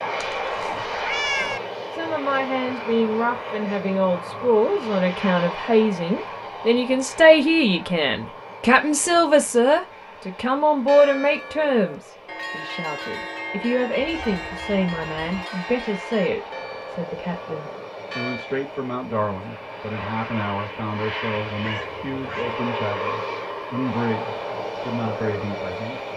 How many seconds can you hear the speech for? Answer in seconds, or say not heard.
24 s.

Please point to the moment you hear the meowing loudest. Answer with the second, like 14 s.
1 s.